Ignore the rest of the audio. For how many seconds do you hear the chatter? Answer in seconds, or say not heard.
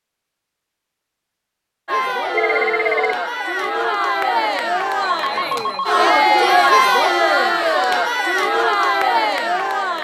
8 s.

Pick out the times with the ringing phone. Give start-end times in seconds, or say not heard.
2.2-3.1, 5.0-7.1.